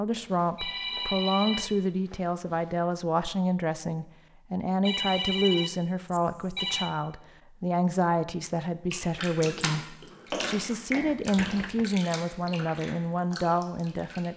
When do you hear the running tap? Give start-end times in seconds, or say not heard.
8.9-14.3.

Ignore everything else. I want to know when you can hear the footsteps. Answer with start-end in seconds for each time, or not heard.
not heard.